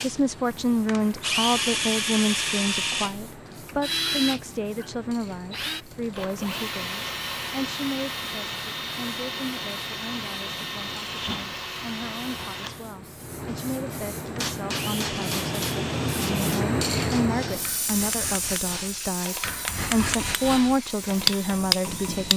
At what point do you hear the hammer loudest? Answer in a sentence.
The loudest moment of the hammer is at 21 seconds.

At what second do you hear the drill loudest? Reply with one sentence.
The volume of the drill peaks at 2 seconds.